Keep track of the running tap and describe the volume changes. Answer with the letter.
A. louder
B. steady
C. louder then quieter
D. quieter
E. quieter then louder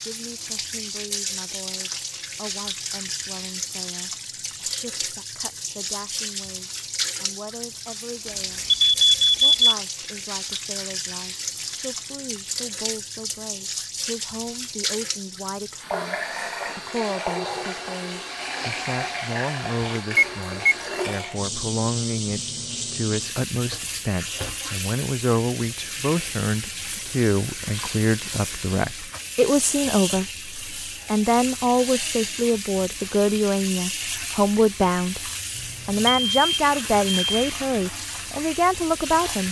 B.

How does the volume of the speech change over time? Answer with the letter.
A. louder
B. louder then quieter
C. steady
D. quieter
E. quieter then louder
A.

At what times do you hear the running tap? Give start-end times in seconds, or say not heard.
0.0-39.4.